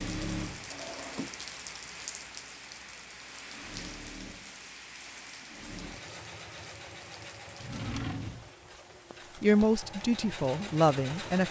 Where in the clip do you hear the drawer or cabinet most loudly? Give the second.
8 s.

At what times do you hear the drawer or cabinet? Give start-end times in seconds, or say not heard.
0.7-1.4, 7.5-8.5.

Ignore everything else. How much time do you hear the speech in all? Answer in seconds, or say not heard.
2 s.